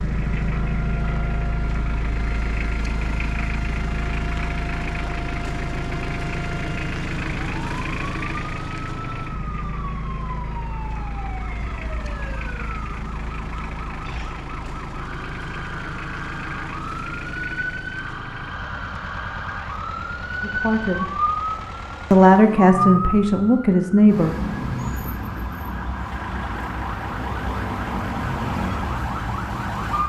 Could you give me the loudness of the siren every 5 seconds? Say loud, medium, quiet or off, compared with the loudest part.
quiet, medium, medium, medium, loud, loud.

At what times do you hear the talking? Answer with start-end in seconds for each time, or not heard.
20.4-21.1, 22.1-24.4.